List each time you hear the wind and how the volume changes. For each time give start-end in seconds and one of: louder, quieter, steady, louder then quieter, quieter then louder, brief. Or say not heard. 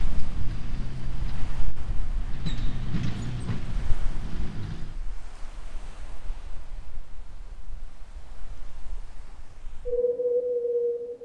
0.0-11.2 quieter then louder.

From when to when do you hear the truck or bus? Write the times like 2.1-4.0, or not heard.
0.0-5.0.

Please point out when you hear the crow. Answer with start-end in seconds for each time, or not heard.
not heard.